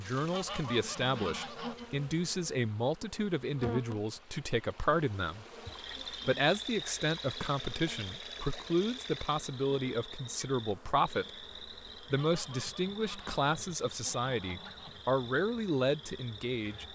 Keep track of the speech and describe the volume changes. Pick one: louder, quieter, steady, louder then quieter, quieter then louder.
steady.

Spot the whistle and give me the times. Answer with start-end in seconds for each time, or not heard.
not heard.